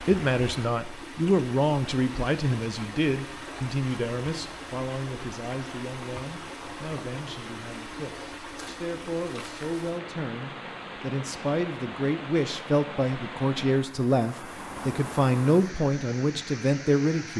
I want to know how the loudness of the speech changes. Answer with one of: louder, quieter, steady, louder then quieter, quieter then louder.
quieter then louder.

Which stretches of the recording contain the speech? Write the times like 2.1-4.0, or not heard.
0.0-17.3.